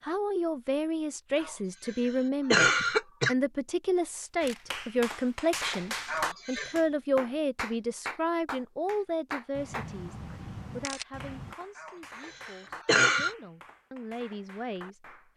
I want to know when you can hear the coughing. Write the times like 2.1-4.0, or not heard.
1.4-3.4, 6.0-6.8, 11.8-13.3.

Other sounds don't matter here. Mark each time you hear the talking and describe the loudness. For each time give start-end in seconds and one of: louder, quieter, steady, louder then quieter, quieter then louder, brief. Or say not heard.
0.0-15.3 quieter.